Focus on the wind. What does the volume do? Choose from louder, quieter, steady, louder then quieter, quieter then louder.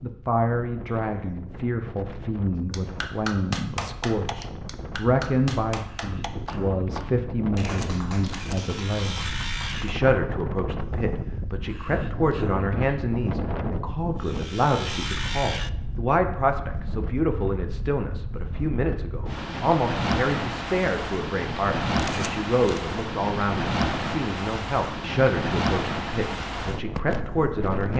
louder.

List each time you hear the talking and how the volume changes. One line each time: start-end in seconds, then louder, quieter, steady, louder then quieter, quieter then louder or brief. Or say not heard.
0.0-27.9 steady.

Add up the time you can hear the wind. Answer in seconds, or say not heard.
28 s.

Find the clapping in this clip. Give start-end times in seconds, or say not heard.
2.7-10.0.